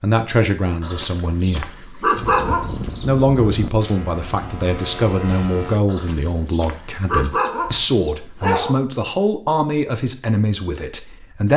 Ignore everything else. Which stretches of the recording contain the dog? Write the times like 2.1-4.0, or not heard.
0.8-3.0, 5.8-8.8.